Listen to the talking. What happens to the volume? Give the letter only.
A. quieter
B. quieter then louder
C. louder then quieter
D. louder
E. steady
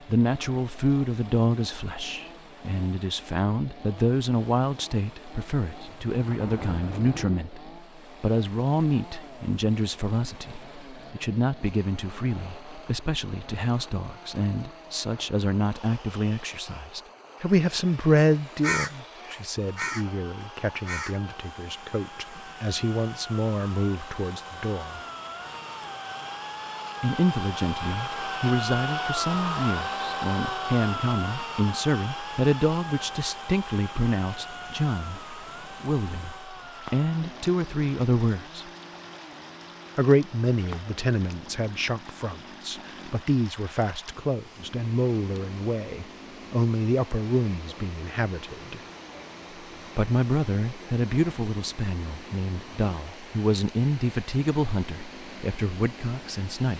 E.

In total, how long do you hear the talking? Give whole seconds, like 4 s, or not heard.
52 s.